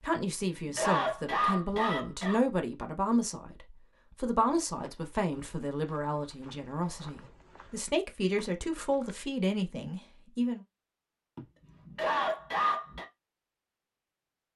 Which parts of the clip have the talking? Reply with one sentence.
You can hear the talking from 0.0 to 10.6 s.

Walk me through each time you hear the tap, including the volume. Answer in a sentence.
You can't hear the tap here.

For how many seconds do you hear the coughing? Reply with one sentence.
You can hear the coughing for 4 seconds altogether.